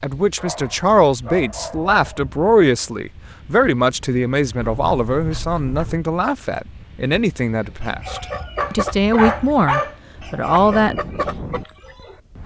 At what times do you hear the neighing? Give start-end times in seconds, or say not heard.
not heard.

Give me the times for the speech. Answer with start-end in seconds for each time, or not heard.
0.0-11.0.